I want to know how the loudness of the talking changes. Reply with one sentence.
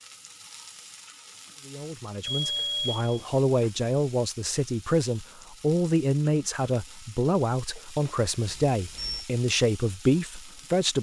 The loudness of the talking stays about the same.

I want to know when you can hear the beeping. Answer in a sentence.
You can hear the beeping from 2.2 to 3.7 s and from 8.4 to 9.2 s.